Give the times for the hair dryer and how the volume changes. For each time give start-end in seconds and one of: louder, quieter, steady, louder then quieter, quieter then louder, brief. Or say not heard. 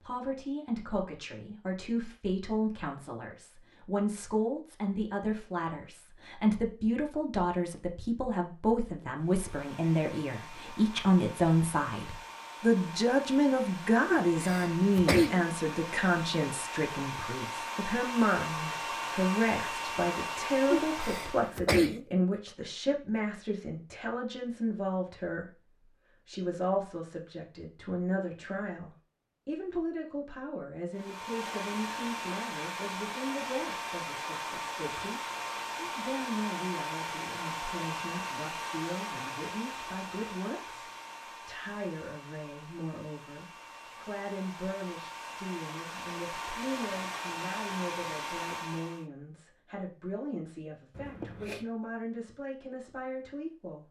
9.2-21.6 louder
30.9-49.0 quieter then louder.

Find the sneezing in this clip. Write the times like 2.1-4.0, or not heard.
14.1-15.4, 20.7-22.1, 51.0-51.6.